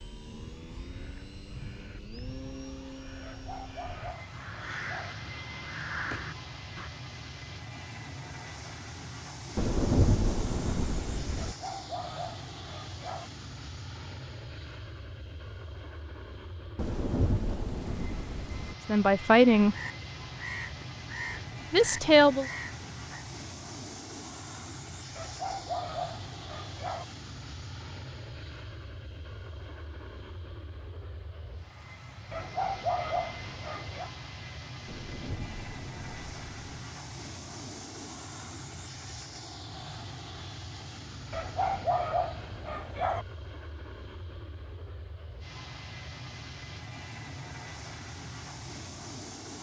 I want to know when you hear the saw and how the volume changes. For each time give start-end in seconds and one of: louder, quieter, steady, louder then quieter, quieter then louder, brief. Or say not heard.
not heard.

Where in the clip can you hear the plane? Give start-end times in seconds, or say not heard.
0.0-49.5.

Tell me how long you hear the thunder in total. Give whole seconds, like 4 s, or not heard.
6 s.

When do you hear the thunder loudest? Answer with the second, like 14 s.
10 s.